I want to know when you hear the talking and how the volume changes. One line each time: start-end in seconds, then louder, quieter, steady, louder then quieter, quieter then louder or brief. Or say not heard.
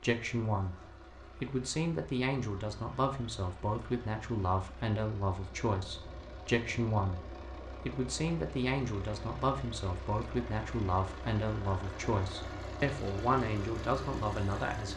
0.0-14.9 steady.